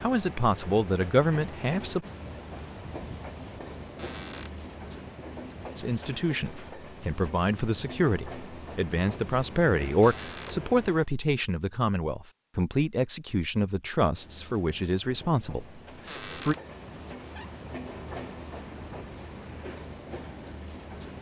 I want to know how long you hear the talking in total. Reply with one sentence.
You can hear the talking for 13 seconds altogether.